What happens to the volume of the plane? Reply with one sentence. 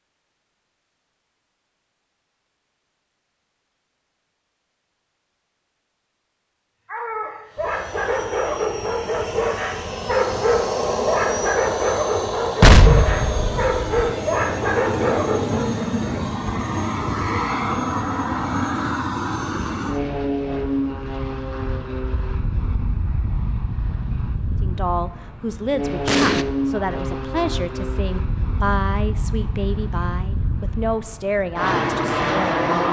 The volume of the plane stays about the same.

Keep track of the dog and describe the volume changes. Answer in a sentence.
The loudness of the dog stays about the same.